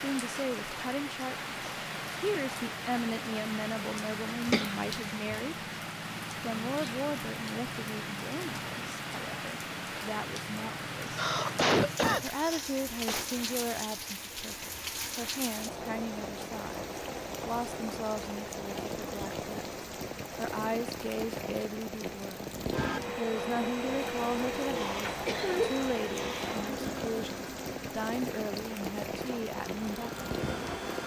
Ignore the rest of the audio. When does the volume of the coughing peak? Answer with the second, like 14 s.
12 s.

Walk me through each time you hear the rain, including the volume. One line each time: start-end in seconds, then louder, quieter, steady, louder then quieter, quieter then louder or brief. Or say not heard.
0.0-31.0 steady.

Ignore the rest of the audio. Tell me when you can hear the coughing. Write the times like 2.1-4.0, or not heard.
4.5-5.4, 11.1-13.2, 24.7-25.9.